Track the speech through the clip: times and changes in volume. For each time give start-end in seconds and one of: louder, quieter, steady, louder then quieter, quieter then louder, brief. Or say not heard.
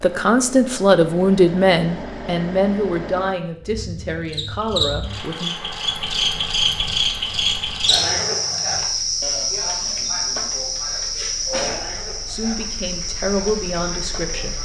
0.0-5.5 quieter
12.2-14.5 brief.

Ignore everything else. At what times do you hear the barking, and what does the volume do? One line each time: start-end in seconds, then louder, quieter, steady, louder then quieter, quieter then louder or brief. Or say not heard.
not heard.